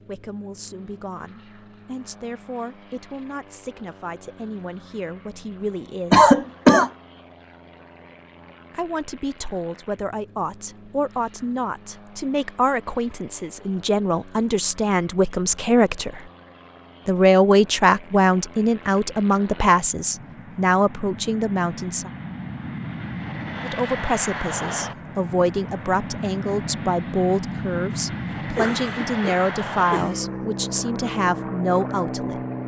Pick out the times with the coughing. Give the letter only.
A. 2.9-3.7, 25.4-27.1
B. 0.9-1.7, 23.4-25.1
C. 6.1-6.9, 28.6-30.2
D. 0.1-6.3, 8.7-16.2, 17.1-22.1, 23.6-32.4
C.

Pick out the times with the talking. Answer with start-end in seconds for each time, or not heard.
0.1-6.3, 8.7-16.2, 17.1-22.1, 23.6-32.4.